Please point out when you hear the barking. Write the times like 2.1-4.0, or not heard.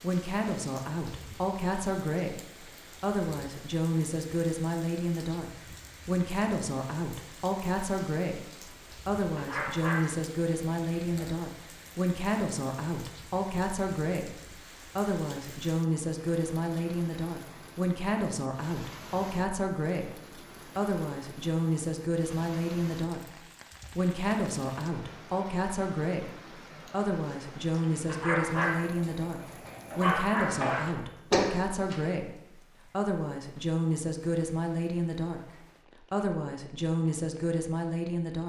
9.3-11.2, 28.1-30.9.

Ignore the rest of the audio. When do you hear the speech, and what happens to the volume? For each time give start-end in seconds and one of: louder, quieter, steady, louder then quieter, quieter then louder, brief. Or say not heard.
0.0-23.2 steady
23.9-35.4 steady
36.1-38.4 brief.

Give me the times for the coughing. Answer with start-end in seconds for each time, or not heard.
30.6-32.0.